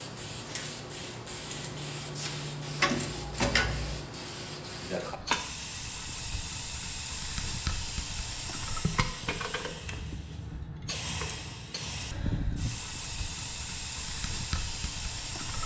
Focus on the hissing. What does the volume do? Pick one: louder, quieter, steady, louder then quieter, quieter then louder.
steady.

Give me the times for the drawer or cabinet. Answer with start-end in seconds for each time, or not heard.
2.8-4.0.